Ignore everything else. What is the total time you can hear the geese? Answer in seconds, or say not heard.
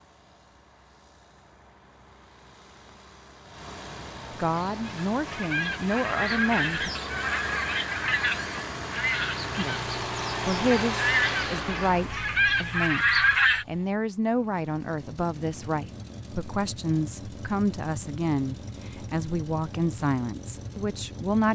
9 s.